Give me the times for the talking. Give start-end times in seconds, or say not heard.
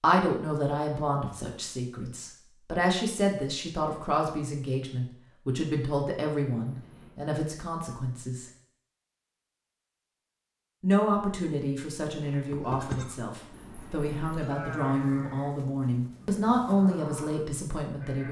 0.0-8.4, 10.8-18.2.